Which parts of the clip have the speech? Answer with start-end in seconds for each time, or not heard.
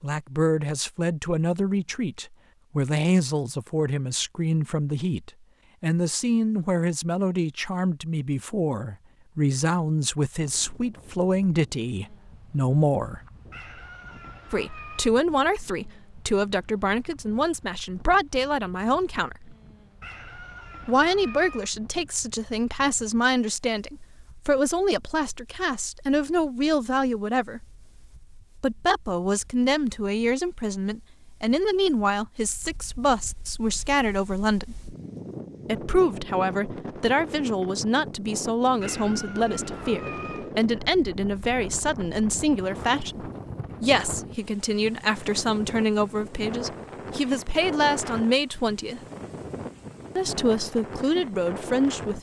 0.0-13.2, 14.5-19.6, 20.9-27.6, 28.6-34.8, 35.6-49.0, 50.1-52.1.